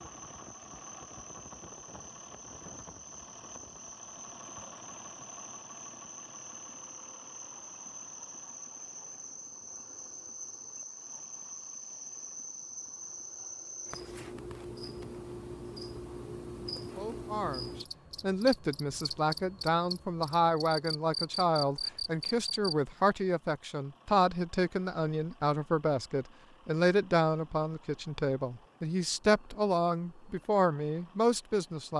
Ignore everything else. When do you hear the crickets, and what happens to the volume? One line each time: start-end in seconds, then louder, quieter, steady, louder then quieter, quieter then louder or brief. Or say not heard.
0.0-22.8 louder.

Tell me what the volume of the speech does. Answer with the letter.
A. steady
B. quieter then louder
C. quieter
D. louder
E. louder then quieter
A.